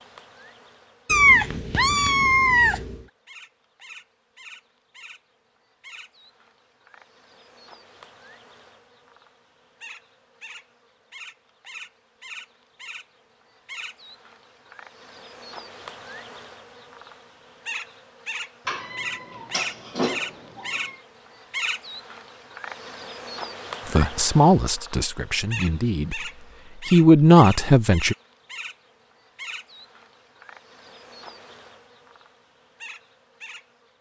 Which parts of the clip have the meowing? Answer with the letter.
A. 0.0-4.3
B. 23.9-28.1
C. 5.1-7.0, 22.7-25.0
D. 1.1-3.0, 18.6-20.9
D.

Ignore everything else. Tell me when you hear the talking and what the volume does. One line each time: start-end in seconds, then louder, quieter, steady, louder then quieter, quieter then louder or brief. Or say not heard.
23.9-28.1 quieter then louder.